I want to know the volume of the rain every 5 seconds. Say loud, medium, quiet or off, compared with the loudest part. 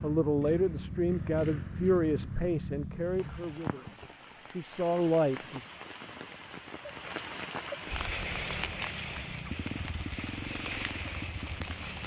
medium, loud, loud.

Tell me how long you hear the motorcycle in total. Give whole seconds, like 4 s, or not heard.
8 s.